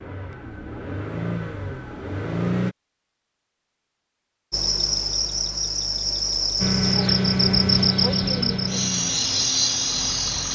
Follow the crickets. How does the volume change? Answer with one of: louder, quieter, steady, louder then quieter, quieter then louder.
steady.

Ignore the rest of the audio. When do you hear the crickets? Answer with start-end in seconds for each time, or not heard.
4.5-10.5.